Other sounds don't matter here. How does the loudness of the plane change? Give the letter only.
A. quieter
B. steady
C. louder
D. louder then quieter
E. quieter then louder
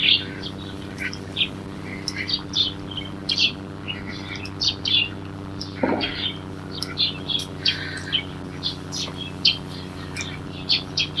B.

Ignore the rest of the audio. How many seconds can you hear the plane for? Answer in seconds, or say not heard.
11 s.